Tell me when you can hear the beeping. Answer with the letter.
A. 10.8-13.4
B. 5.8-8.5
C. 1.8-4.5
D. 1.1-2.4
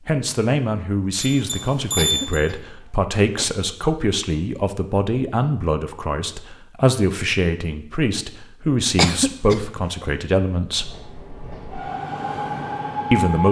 D.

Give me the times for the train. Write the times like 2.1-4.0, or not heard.
10.8-13.4.